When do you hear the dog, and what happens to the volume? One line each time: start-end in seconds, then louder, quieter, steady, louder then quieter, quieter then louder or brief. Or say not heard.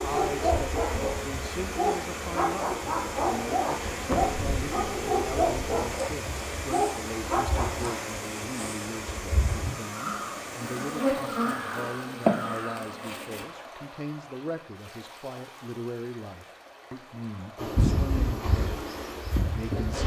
0.0-8.0 steady.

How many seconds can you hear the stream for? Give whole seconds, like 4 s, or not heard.
20 s.